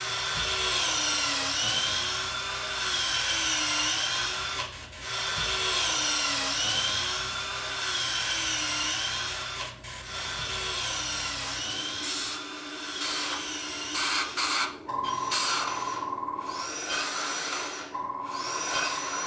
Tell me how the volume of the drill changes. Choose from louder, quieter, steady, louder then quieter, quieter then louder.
quieter.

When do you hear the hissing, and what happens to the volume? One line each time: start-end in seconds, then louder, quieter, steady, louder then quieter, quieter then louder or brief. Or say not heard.
0.1-19.2 louder.